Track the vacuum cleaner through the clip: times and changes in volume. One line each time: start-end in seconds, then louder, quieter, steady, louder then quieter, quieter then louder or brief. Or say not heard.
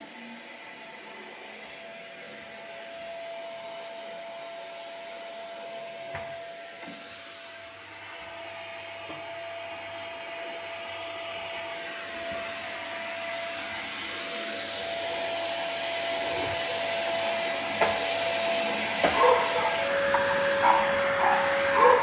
0.0-21.9 louder.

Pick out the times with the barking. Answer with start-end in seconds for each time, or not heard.
19.1-21.9.